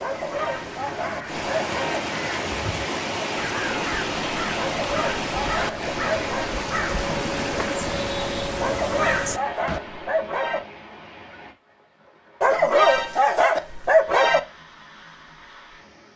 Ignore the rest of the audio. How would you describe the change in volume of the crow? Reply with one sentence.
The loudness of the crow goes up.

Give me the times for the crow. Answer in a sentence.
The crow can be heard from 0.3 to 9.8 s.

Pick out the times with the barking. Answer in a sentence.
The barking can be heard from 0.0 to 2.0 s, from 4.5 to 6.5 s, from 8.6 to 10.6 s and from 12.4 to 14.4 s.